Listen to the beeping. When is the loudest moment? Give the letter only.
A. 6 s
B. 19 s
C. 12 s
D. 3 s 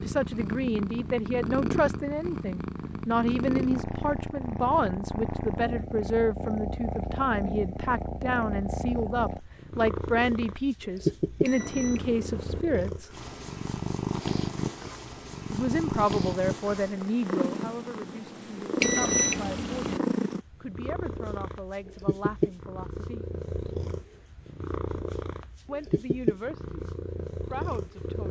B.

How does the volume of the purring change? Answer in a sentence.
The loudness of the purring stays about the same.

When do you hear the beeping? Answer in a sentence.
You can hear the beeping from 11.4 to 12.7 s and from 18.8 to 20.0 s.